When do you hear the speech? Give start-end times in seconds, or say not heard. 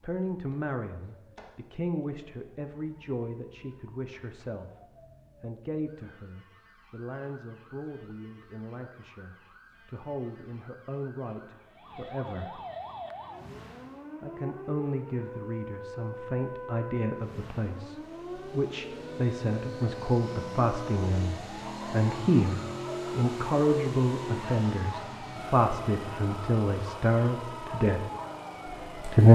0.0-4.7, 5.4-12.6, 14.2-28.1, 28.9-29.3.